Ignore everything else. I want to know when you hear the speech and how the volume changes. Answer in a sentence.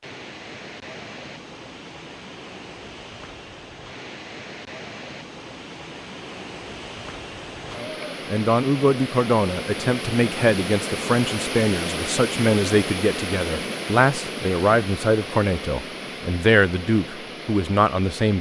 You can hear the speech from 7.8 to 18.3 s, at a steady volume.